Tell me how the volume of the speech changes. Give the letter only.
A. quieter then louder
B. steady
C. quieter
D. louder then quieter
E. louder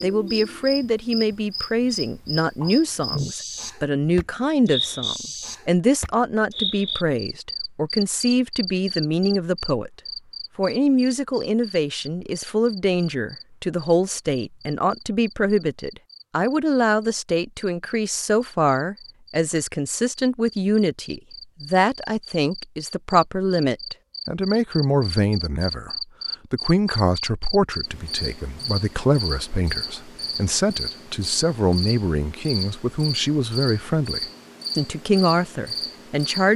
B.